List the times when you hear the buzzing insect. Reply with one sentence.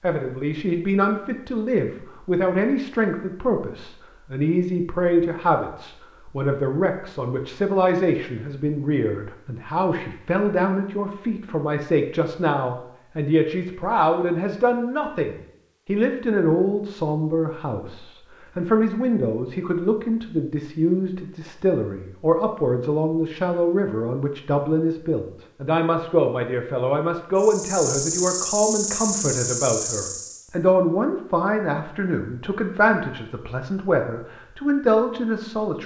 The buzzing insect can be heard from 27.4 to 30.4 s.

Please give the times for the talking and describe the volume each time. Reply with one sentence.
The talking can be heard from 0.0 to 35.8 s, at a steady volume.